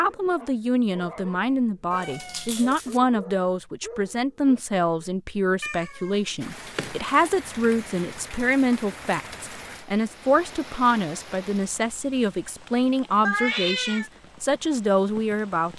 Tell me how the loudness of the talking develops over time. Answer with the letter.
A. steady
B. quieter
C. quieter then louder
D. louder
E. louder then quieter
A.